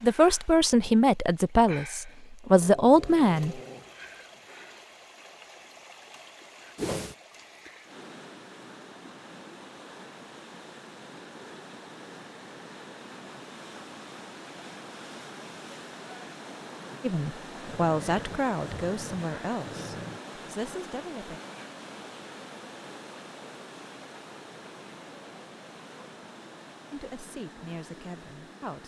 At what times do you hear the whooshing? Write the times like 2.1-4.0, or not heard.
6.8-7.2.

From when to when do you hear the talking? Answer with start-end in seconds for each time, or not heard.
0.0-3.6, 17.0-21.4, 26.9-28.8.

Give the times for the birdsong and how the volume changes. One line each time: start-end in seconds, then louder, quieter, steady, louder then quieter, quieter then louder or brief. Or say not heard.
not heard.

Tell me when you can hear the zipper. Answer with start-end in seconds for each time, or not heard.
not heard.